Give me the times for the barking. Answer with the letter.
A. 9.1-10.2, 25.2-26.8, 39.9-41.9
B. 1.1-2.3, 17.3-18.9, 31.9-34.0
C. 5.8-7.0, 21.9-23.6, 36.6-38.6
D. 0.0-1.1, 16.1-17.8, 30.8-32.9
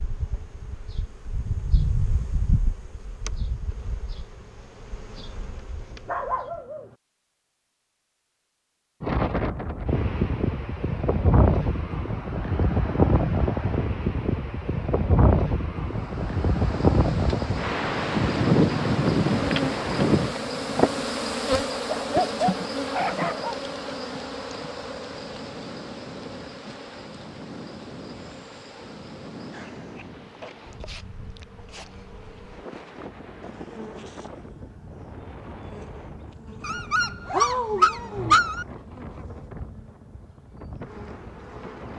C.